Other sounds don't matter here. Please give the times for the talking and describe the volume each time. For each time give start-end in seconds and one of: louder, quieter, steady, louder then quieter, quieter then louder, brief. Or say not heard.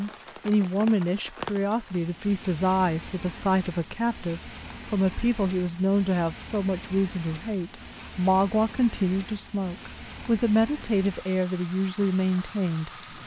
0.0-12.9 steady.